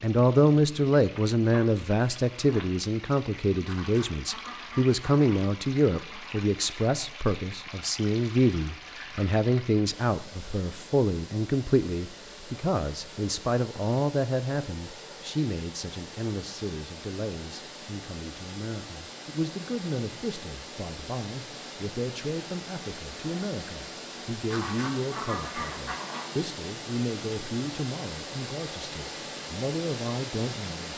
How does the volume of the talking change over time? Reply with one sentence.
The loudness of the talking goes down.